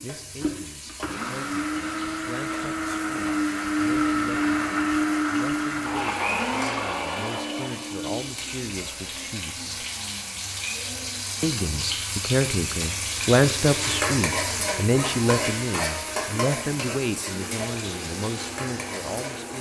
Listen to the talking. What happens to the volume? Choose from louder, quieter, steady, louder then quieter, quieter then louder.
louder then quieter.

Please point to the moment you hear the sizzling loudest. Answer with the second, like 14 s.
14 s.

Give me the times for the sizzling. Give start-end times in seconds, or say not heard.
0.0-19.5.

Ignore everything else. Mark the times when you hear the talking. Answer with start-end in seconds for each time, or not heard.
0.0-9.7, 11.4-19.5.